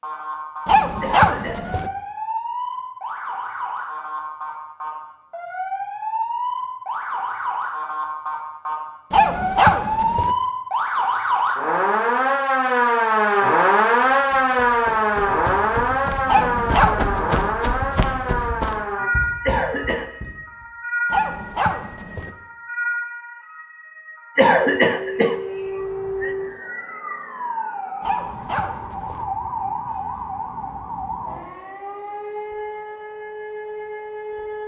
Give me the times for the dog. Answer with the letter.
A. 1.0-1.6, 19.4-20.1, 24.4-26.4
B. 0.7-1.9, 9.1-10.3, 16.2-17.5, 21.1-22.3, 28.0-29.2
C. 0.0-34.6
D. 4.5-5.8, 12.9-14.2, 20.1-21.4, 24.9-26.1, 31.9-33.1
B.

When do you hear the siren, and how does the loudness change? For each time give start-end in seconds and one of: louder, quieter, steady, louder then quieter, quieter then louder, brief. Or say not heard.
0.0-34.6 louder then quieter.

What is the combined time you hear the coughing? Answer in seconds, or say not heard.
3 s.